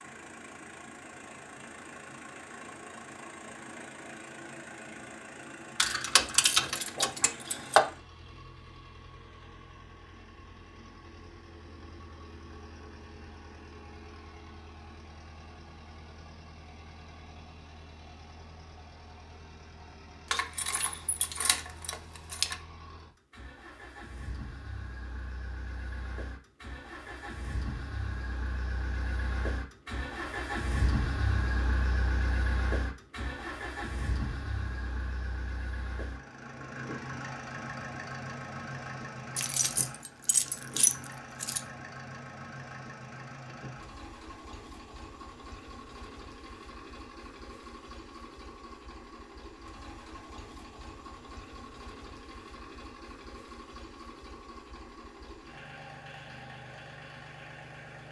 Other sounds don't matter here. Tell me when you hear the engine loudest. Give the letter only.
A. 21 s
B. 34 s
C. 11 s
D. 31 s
D.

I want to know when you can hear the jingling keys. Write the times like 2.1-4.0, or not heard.
5.8-7.8, 20.3-22.6, 39.4-41.6.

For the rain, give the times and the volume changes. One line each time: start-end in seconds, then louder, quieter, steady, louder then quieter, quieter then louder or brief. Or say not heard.
not heard.